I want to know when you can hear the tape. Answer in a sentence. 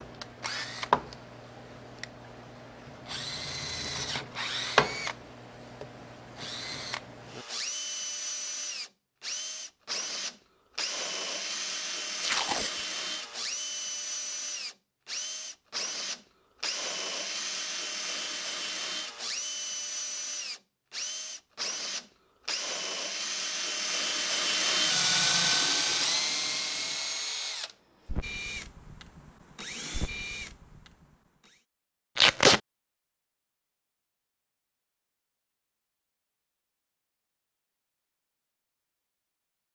You can hear the tape from 12.2 to 12.8 s and from 32.1 to 32.6 s.